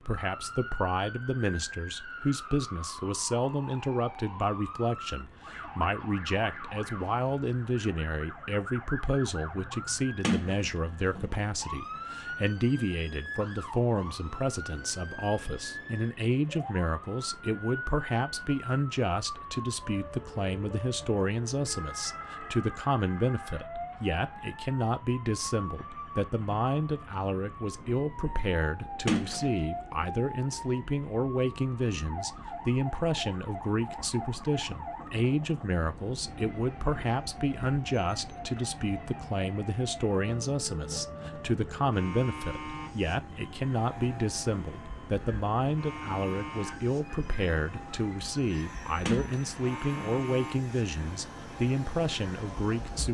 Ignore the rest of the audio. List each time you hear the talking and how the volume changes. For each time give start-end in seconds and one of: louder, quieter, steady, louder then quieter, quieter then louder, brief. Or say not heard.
0.1-53.0 steady.